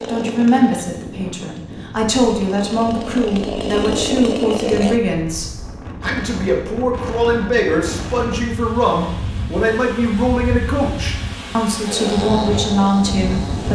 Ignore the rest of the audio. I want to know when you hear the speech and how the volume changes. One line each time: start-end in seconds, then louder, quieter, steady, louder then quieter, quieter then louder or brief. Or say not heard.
0.1-13.7 steady.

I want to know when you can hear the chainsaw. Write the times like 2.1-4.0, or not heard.
0.0-5.0, 11.8-13.7.